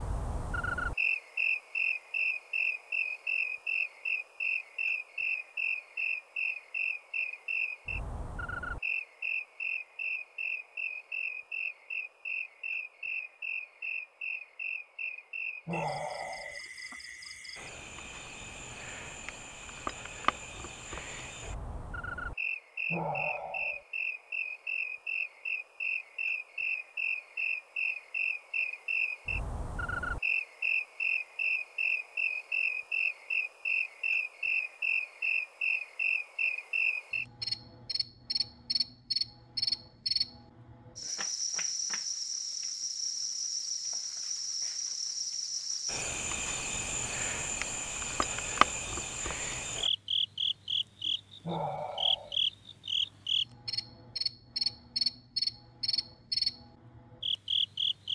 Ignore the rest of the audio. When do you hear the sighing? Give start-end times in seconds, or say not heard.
15.7-16.6, 22.9-23.9, 51.4-52.4.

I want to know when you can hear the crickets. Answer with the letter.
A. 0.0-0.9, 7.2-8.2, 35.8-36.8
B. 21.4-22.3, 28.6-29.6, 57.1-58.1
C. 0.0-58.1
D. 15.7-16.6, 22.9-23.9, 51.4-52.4
C.